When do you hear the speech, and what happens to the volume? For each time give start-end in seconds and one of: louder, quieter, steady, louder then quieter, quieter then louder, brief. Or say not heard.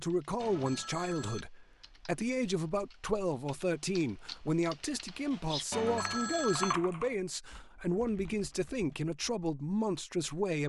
0.0-10.6 steady.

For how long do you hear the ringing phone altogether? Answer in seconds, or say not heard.
2 s.